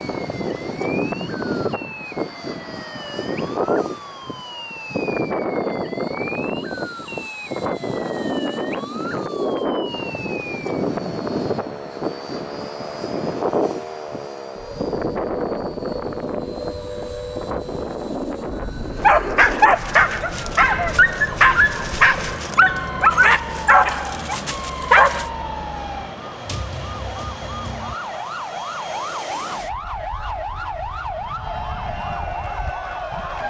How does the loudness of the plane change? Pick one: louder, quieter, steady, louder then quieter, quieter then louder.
quieter.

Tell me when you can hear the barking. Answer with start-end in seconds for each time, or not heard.
19.0-25.2.